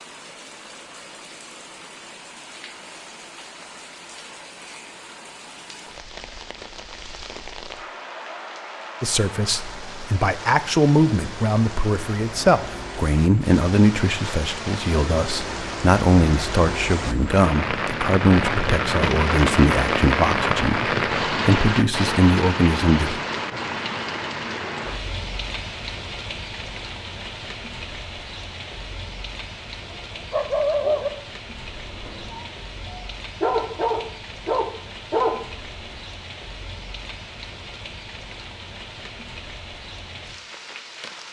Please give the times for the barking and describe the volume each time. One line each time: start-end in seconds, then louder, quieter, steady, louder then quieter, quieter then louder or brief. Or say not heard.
29.9-36.0 quieter then louder.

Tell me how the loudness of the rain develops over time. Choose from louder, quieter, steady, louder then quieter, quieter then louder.
louder then quieter.